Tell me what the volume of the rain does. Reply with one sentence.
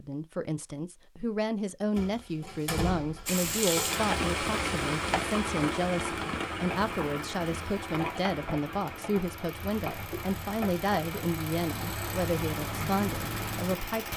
The loudness of the rain goes down.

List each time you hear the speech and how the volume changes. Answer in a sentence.
You can hear the speech from 0.0 to 14.1 s, at a steady volume.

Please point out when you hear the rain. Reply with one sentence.
The rain can be heard from 3.2 to 14.1 s.